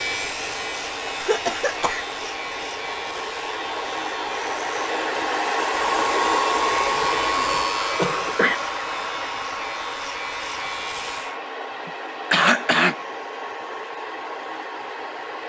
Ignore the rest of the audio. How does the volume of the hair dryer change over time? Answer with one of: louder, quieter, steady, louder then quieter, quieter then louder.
louder then quieter.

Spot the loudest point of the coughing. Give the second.
12 s.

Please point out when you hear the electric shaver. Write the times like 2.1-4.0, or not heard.
0.0-11.3.